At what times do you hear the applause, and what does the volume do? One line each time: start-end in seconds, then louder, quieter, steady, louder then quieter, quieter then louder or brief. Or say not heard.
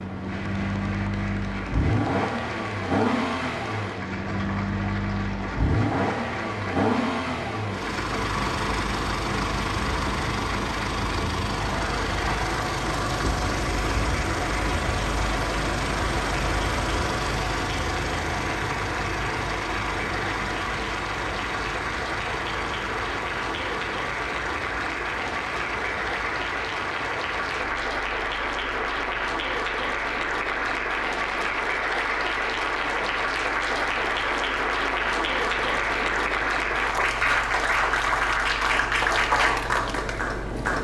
0.2-40.7 louder.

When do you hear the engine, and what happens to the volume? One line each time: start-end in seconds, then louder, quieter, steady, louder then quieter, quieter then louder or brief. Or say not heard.
0.0-40.7 quieter.